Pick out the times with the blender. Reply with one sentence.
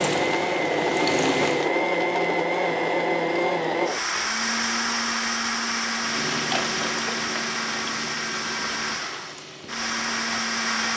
The blender can be heard from 0.0 to 10.9 s.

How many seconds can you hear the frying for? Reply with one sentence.
You can hear the frying for 6 seconds altogether.